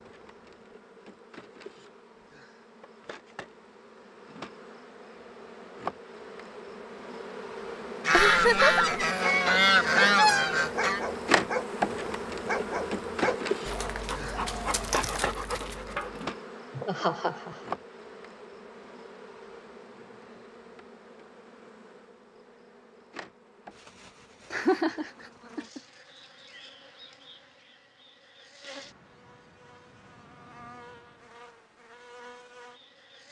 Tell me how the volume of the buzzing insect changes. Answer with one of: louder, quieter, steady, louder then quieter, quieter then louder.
louder then quieter.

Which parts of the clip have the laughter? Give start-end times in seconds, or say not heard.
8.1-8.8, 16.8-17.7, 24.5-25.8.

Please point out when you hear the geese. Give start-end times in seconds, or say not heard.
8.1-11.0.